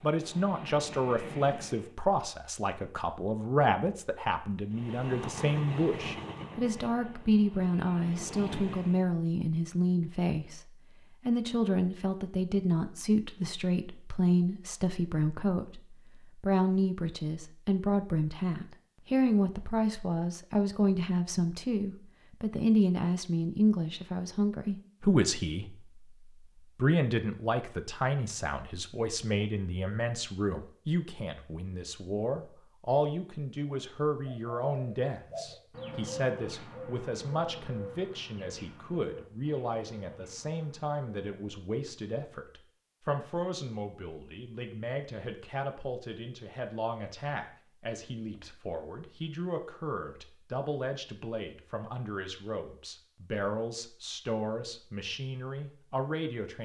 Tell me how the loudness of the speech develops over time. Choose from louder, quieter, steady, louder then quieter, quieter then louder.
quieter.